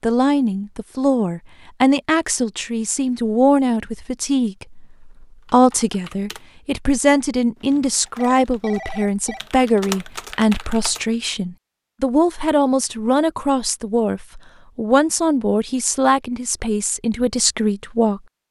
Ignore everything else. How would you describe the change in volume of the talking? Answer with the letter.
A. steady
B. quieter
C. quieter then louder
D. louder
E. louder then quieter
A.